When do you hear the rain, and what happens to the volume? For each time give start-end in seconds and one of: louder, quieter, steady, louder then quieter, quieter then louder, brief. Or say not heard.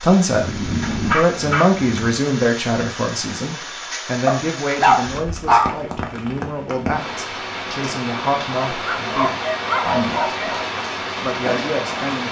0.0-12.2 louder.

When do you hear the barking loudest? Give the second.
5 s.